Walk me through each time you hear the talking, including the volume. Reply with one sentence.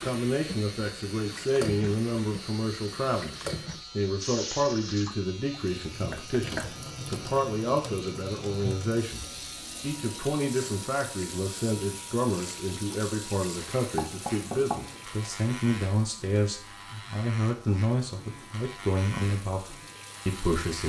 You can hear the talking from 0.0 to 20.8 s, at a steady volume.